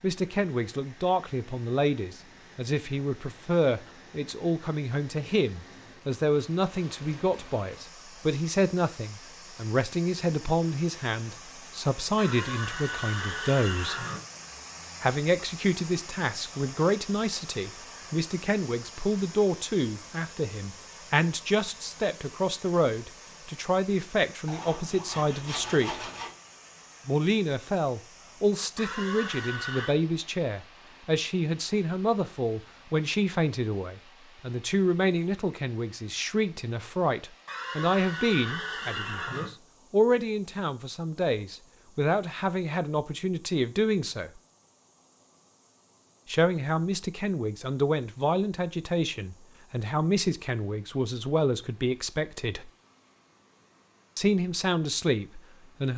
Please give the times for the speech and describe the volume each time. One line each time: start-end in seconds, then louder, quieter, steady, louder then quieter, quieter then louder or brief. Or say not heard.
0.0-14.1 steady
15.0-26.0 steady
27.1-44.4 steady
46.2-52.7 steady
54.1-55.9 brief.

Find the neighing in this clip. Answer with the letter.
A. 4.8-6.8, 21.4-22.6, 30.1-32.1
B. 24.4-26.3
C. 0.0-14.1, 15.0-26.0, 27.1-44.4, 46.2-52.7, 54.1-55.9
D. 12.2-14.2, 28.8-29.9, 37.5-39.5
D.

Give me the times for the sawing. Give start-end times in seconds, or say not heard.
24.4-26.3.